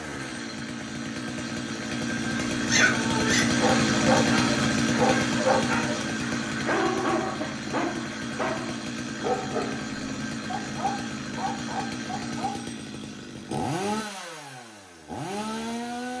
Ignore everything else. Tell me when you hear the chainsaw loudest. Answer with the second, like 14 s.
4 s.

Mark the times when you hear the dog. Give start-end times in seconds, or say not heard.
2.5-12.6.